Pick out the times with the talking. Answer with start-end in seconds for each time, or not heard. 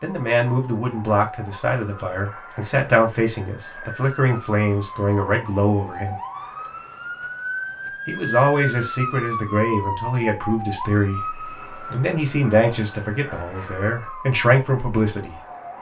0.0-6.2, 8.1-15.4.